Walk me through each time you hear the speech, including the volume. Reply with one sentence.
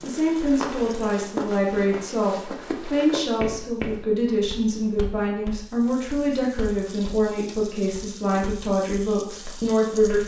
You can hear the speech from 0.0 to 10.2 s, at a steady volume.